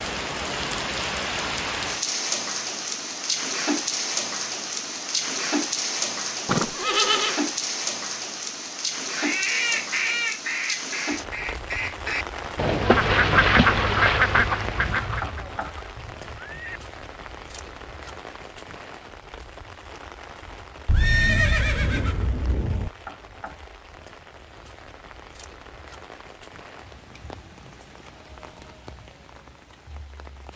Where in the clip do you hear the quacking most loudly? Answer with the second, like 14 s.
14 s.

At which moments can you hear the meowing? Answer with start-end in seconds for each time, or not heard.
not heard.